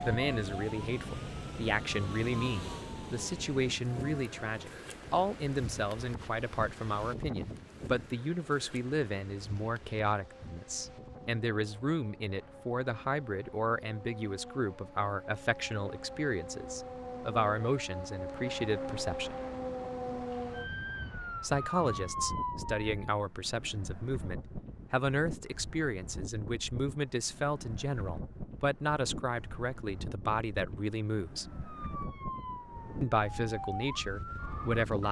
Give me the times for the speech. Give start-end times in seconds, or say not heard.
0.0-19.4, 21.4-31.4, 33.0-35.0.